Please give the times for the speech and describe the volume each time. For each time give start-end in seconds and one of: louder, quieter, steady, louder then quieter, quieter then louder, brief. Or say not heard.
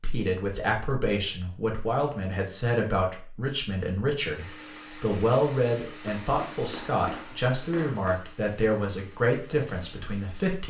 0.0-10.6 steady.